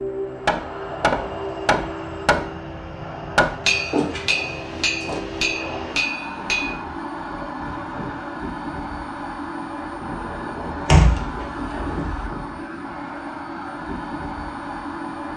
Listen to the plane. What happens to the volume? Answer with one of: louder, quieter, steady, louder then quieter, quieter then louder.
steady.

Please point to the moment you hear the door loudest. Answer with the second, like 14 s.
11 s.